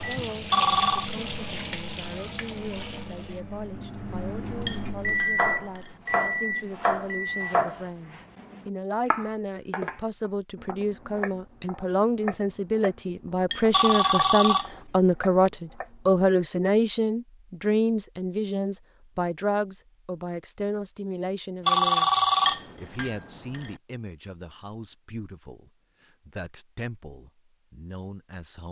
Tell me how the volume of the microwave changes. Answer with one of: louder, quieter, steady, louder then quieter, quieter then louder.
louder.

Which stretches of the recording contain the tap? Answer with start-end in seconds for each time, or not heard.
0.0-5.0.